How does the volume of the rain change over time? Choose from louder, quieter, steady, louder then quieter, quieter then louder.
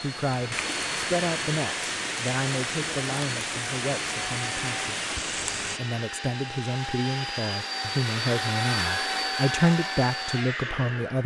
steady.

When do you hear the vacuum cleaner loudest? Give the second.
9 s.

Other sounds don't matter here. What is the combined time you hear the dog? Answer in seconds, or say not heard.
not heard.